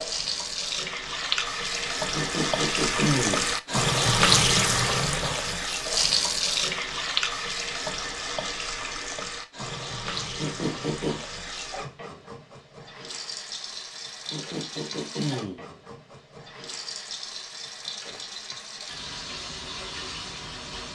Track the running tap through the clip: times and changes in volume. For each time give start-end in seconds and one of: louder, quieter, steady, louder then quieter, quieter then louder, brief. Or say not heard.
0.0-20.8 quieter.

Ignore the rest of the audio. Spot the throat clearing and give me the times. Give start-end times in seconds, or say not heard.
2.1-3.5, 10.3-11.2, 14.3-15.7.